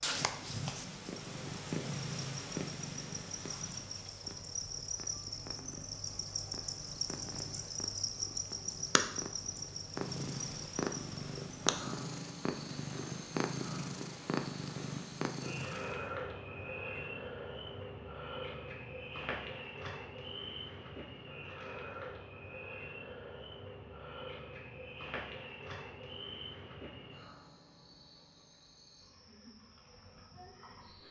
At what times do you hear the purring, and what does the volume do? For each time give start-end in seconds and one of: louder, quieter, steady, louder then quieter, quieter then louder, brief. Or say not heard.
0.0-16.0 quieter then louder.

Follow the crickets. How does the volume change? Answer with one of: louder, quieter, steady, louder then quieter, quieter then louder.
quieter.